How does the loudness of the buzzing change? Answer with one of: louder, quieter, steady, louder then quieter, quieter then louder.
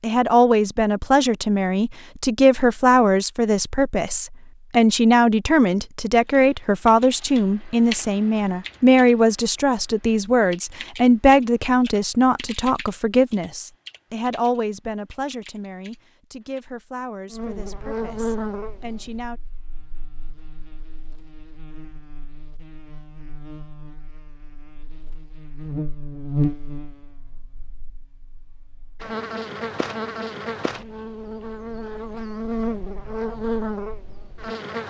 quieter then louder.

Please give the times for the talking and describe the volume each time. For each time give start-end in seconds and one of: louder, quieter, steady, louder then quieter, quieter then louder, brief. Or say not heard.
0.0-19.4 quieter.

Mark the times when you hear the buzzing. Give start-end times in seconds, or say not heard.
17.3-34.8.